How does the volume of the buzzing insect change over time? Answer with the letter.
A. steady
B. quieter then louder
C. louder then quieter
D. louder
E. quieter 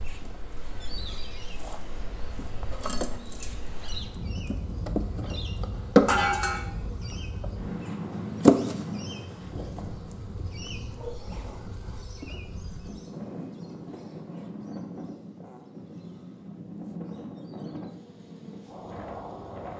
C.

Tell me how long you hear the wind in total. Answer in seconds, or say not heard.
20 s.